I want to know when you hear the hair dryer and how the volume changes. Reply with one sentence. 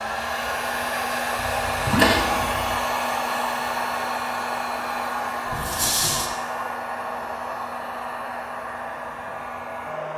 You can hear the hair dryer from 0.0 to 10.1 s, getting quieter.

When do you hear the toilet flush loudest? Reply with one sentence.
The volume of the toilet flush peaks at 2 seconds.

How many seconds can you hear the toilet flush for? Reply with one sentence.
You can hear the toilet flush for 2 seconds altogether.